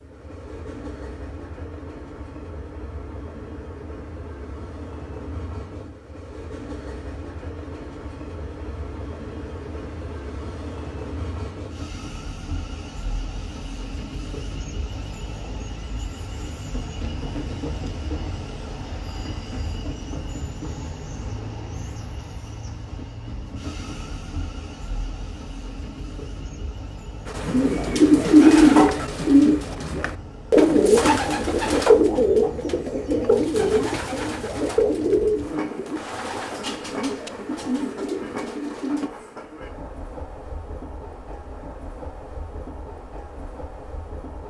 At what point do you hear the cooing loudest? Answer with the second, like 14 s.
29 s.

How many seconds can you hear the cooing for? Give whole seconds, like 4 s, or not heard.
12 s.